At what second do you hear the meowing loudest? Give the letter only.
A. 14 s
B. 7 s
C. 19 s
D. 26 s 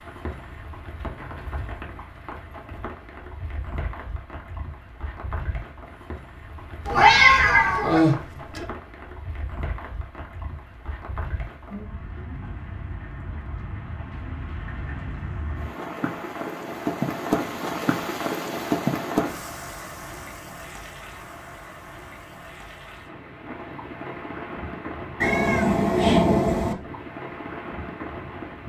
B.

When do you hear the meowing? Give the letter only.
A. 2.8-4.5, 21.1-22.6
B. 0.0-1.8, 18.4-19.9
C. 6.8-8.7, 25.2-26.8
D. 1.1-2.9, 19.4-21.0
C.